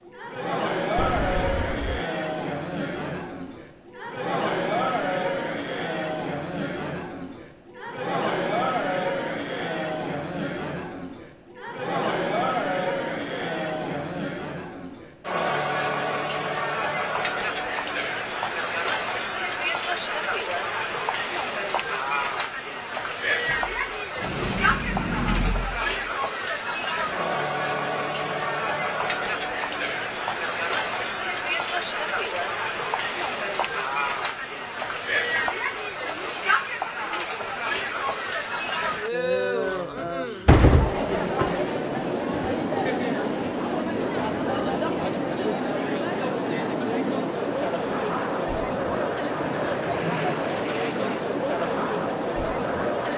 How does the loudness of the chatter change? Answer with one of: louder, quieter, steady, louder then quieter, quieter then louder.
steady.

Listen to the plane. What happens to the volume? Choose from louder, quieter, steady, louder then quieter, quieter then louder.
steady.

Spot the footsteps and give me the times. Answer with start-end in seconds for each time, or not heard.
not heard.